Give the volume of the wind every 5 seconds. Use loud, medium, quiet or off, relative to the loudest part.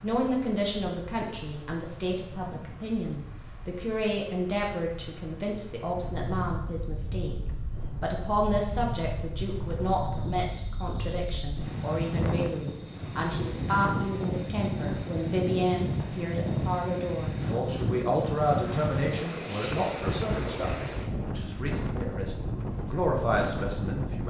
quiet, medium, loud, loud, loud.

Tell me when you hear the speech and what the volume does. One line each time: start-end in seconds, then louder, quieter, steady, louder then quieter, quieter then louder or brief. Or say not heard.
0.0-7.3 steady
8.0-24.2 steady.